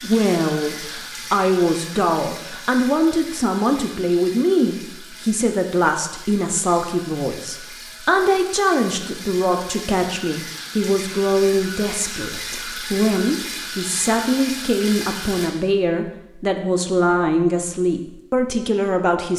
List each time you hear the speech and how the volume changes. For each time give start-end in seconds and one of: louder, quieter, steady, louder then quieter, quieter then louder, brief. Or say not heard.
0.0-19.3 steady.